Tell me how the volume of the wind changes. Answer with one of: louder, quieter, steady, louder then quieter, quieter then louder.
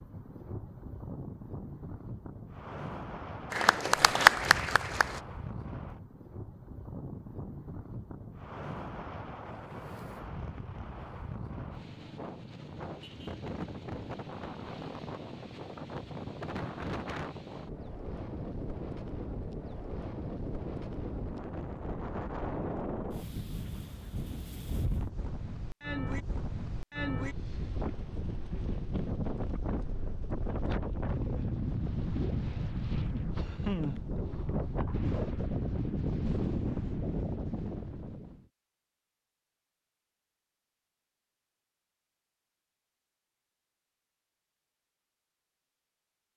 louder.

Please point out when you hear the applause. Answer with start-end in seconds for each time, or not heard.
3.5-5.2.